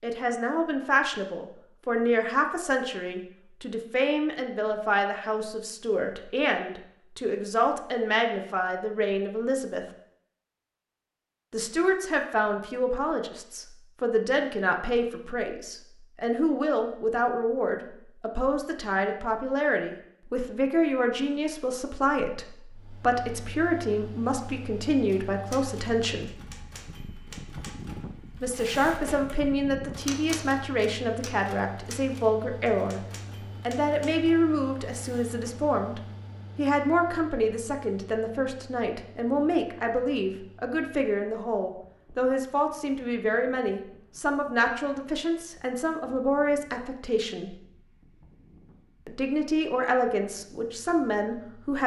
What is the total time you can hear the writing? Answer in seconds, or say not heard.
not heard.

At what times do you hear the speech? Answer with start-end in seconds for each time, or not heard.
0.0-9.8, 11.5-26.3, 28.4-33.0, 33.6-47.5, 49.0-51.8.